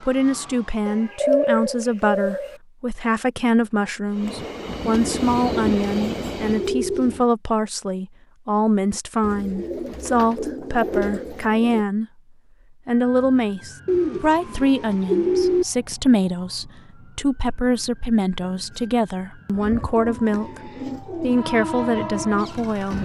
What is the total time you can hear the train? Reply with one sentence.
You can hear the train for 4 seconds altogether.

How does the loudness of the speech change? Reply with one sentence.
The loudness of the speech stays about the same.